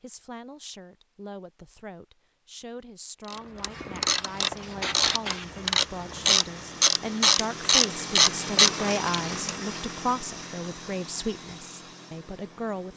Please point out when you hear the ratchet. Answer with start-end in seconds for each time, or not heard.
3.2-9.8.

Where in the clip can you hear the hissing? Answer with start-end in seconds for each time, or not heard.
3.6-5.6.